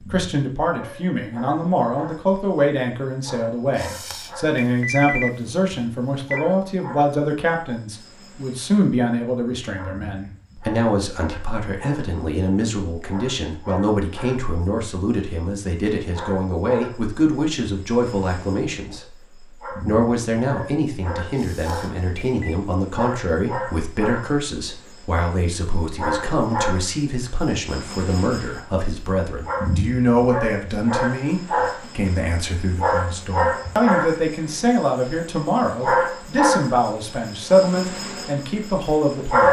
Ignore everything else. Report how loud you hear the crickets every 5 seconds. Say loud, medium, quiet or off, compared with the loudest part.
quiet, quiet, quiet, quiet, medium, medium, loud, loud.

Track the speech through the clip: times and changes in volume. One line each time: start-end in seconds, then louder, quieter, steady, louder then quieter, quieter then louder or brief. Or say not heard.
0.0-39.4 steady.